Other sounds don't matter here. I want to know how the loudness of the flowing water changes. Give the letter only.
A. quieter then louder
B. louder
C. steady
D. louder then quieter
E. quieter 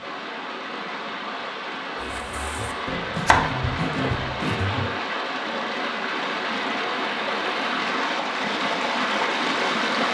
B.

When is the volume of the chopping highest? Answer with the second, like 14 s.
3 s.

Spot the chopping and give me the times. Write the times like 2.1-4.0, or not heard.
1.9-4.9.